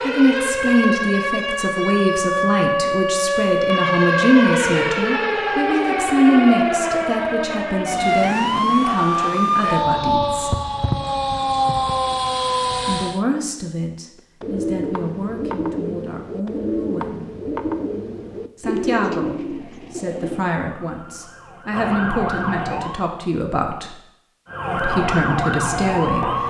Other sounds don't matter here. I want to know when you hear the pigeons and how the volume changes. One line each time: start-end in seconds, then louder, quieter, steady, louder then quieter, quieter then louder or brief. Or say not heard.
14.2-20.4 steady.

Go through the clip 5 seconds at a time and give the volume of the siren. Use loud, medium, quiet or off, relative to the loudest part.
loud, loud, loud, off, medium, loud.